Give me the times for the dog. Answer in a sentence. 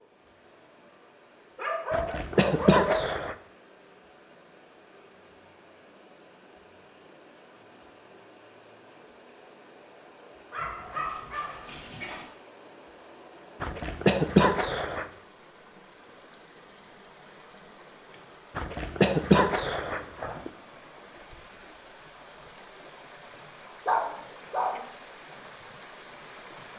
The dog can be heard from 1.6 to 3.1 s, from 10.5 to 12.2 s and from 23.9 to 24.9 s.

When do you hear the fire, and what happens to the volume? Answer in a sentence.
The fire can't be heard in this clip.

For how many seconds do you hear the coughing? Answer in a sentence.
The coughing can be heard for 5 seconds in total.